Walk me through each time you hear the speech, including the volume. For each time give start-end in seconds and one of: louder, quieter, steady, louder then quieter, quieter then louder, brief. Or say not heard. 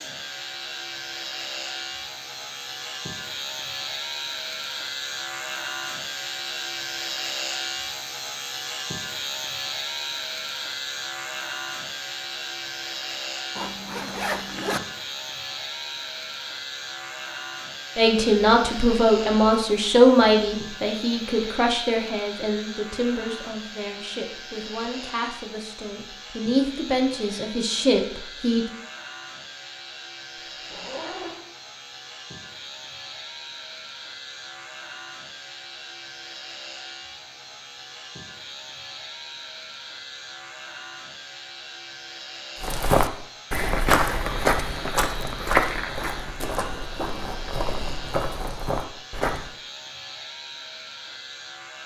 17.9-28.6 quieter then louder.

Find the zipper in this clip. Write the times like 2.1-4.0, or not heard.
13.6-14.8, 30.6-31.4.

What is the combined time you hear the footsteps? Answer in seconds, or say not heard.
7 s.